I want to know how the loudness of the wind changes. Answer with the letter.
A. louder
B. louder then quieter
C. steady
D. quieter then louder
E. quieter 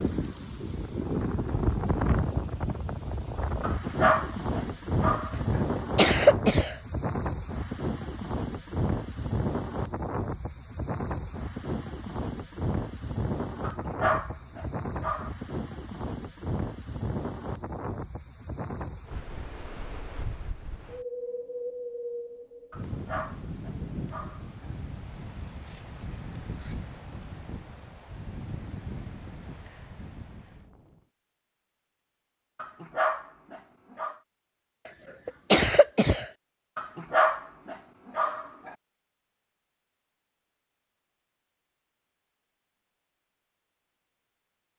E.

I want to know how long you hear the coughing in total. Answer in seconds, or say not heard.
2 s.